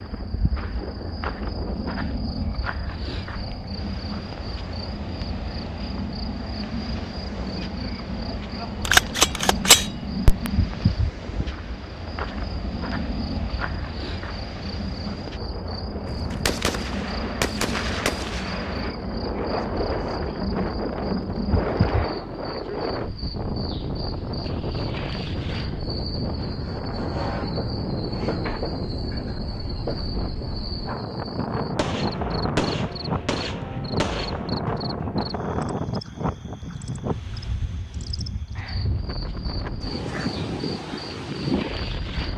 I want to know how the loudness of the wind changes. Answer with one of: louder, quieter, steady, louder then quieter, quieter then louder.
louder.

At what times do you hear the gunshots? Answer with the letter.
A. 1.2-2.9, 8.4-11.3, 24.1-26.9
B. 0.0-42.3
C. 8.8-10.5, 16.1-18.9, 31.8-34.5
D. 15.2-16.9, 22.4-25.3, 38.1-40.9
C.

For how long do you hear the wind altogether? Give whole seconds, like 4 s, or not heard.
42 s.